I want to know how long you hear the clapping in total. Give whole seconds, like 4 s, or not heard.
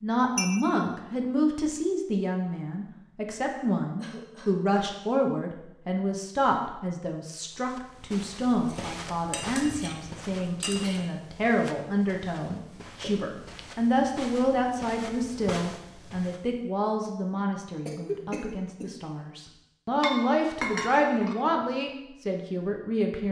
not heard.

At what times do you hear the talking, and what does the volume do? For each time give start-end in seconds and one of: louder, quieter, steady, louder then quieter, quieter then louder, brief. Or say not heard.
0.0-23.2 steady.